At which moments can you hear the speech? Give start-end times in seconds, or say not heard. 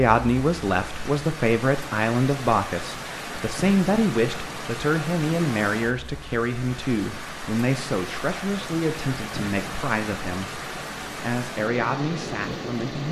0.0-13.0.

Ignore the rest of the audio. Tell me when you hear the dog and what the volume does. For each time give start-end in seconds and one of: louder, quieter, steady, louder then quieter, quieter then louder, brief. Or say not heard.
not heard.